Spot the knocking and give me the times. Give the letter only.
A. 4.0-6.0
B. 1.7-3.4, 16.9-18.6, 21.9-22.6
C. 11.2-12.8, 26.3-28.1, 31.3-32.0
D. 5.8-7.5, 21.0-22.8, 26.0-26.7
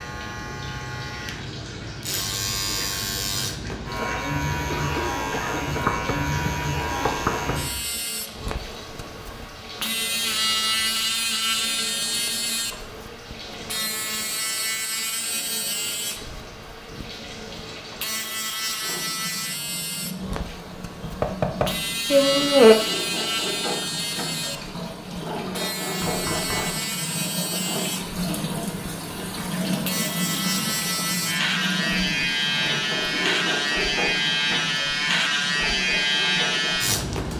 D.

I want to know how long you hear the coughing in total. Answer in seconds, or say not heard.
2 s.